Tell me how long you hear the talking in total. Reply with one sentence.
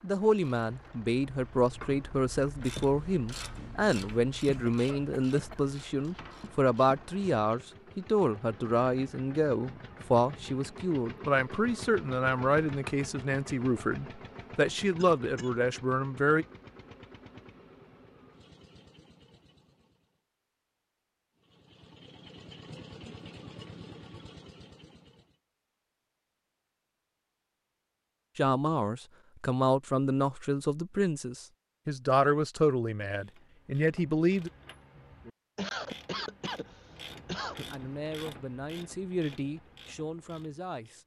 You can hear the talking for 26 seconds altogether.